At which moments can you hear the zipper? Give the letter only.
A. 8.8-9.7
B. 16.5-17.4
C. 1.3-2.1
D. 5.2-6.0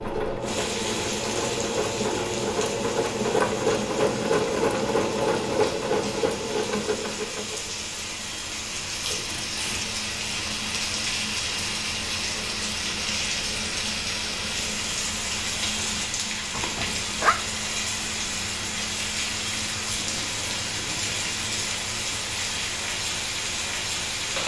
B.